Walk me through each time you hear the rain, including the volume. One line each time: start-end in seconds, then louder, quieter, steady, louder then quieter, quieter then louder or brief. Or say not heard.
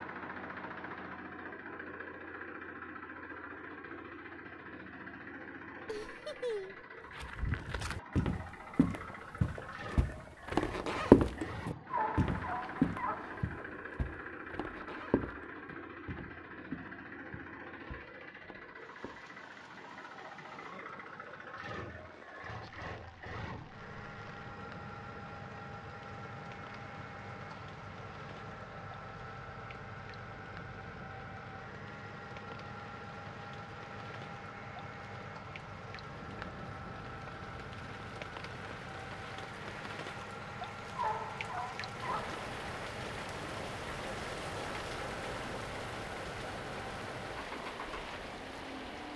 18.8-49.1 louder.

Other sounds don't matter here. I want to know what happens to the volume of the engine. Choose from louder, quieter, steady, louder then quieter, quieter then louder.
steady.